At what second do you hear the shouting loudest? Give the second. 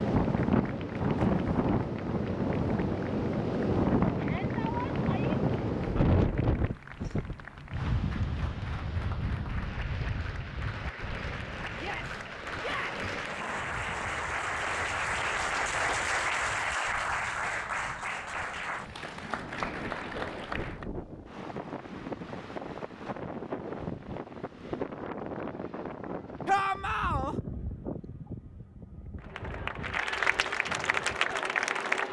27 s.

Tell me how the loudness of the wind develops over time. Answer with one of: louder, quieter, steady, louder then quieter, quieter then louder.
quieter then louder.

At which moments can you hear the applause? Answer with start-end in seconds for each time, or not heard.
0.1-20.9, 29.1-32.0.